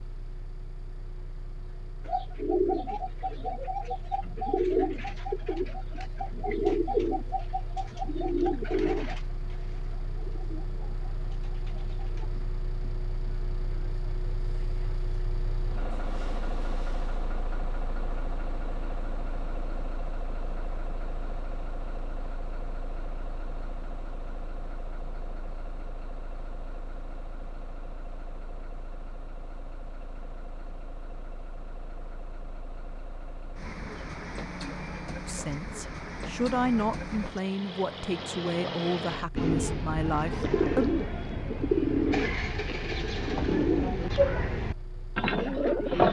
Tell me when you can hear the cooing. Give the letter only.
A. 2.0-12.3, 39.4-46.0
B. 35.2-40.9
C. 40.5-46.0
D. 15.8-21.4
A.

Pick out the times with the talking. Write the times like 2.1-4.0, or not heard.
35.2-40.9.